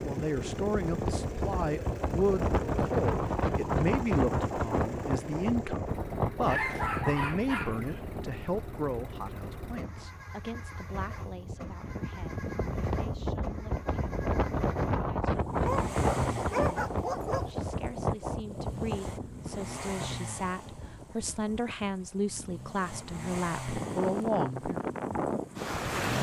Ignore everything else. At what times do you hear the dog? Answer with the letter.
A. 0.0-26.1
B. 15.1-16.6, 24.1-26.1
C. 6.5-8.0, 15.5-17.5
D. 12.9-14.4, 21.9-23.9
C.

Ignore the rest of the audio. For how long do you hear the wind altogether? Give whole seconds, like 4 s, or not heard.
26 s.